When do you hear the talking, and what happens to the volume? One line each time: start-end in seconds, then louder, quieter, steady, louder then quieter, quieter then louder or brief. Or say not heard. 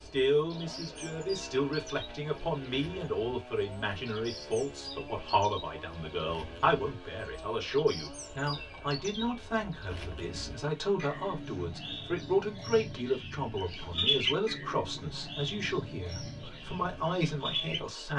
0.0-18.1 steady.